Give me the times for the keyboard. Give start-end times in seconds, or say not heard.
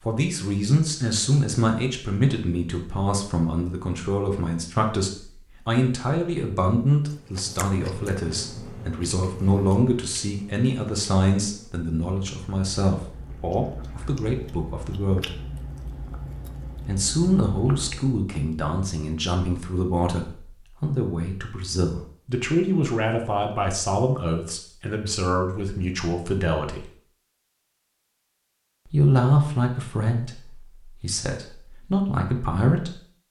not heard.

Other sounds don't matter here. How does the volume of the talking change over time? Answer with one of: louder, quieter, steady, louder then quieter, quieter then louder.
steady.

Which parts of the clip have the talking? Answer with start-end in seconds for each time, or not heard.
0.0-15.3, 16.9-26.9, 28.9-33.0.